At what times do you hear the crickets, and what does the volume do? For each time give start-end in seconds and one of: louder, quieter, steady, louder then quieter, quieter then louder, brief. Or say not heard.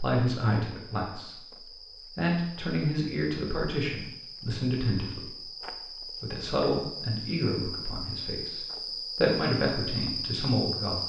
0.0-11.0 louder.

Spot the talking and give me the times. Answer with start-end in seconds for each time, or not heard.
0.0-1.5, 2.1-5.5, 6.2-11.0.